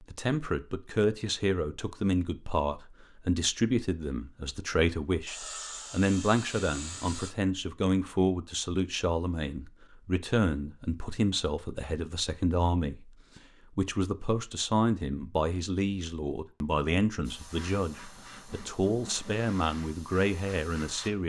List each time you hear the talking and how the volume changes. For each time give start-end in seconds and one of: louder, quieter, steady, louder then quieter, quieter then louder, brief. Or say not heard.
0.0-21.2 steady.